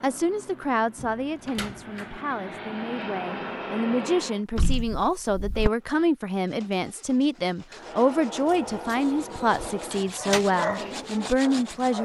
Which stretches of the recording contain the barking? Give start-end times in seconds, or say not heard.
10.0-12.0.